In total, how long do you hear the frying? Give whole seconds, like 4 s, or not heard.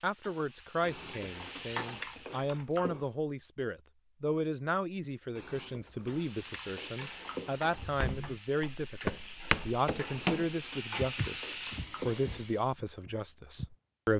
9 s.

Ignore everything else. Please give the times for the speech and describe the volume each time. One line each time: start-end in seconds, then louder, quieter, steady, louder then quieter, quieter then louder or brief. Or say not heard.
0.0-14.1 steady.